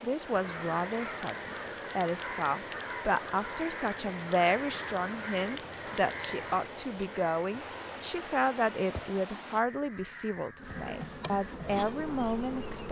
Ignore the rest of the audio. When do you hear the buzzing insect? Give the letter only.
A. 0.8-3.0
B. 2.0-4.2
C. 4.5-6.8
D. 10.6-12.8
D.